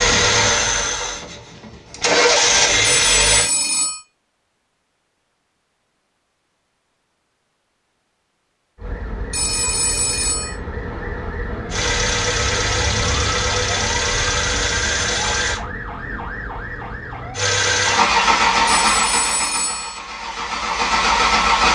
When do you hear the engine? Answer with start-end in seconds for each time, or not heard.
0.0-3.5, 11.7-15.6, 17.4-21.6.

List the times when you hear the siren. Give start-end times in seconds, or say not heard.
8.8-17.4.